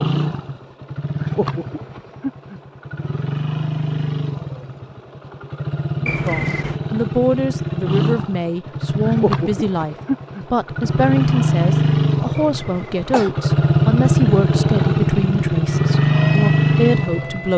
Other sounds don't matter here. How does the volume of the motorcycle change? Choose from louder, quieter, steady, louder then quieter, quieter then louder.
louder.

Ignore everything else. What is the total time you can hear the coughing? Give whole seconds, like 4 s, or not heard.
2 s.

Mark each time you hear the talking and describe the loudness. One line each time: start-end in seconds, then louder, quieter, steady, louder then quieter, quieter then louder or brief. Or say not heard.
6.0-17.5 steady.